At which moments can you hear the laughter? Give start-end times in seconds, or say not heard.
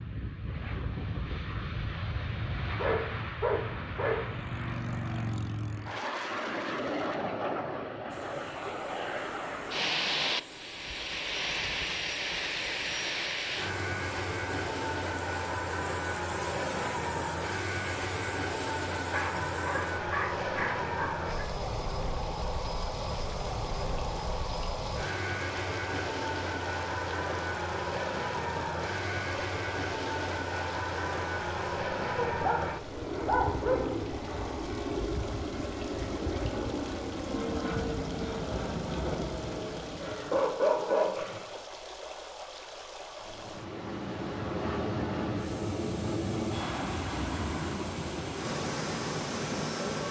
not heard.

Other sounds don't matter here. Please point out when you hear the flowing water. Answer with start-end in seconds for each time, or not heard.
8.1-50.0.